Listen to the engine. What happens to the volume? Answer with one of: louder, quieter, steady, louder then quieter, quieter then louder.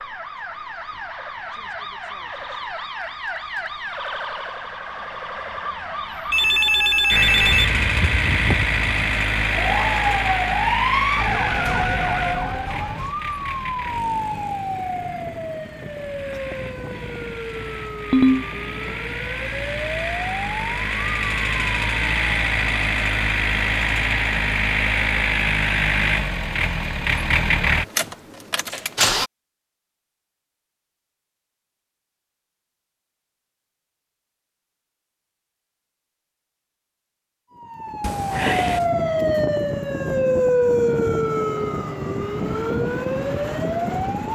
quieter then louder.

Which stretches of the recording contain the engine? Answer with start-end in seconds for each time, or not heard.
7.1-29.3.